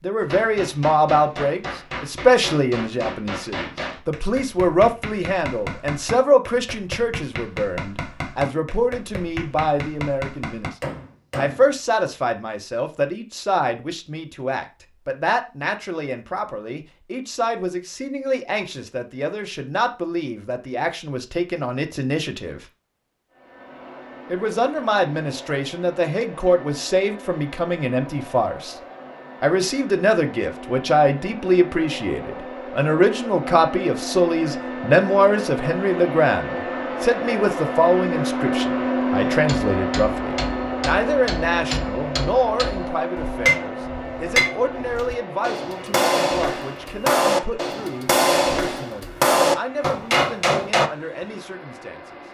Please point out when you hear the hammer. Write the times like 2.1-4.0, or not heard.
0.2-11.7, 39.2-50.9.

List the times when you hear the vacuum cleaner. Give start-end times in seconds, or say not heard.
23.3-52.3.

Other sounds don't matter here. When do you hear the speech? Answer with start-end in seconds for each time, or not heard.
0.0-10.7, 11.3-22.6, 24.3-28.8, 29.4-52.2.